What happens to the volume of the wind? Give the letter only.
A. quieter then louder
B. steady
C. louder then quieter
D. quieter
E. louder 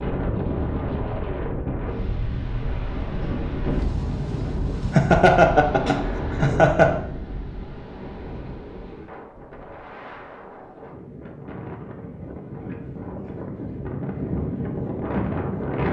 A.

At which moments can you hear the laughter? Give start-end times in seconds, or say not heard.
4.9-7.0.